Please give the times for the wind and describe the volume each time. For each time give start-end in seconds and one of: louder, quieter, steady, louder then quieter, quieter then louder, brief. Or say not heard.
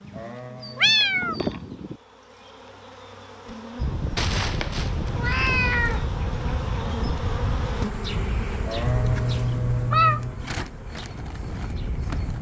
3.8-12.3 quieter.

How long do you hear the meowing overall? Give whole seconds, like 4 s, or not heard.
5 s.